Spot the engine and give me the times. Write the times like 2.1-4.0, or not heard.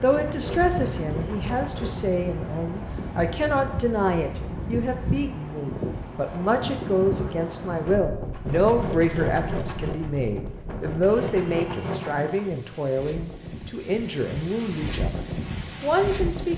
0.0-2.1, 8.2-12.6.